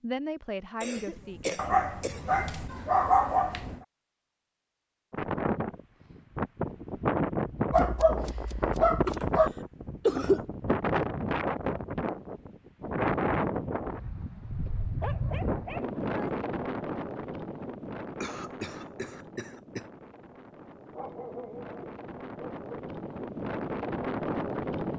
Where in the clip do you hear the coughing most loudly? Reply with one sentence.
The loudest moment of the coughing is at 10 seconds.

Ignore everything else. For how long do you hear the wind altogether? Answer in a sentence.
You can hear the wind for 20 seconds altogether.